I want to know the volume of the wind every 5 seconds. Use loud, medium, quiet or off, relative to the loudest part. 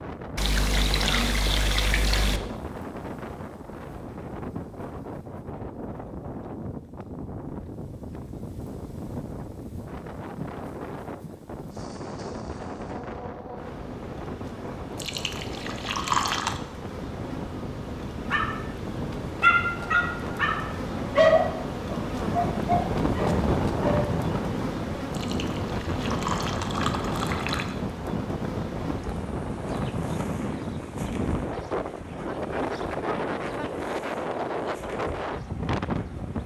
medium, medium, medium, medium, loud, loud, loud, loud.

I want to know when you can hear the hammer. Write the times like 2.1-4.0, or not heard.
not heard.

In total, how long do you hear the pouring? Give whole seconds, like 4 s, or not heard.
6 s.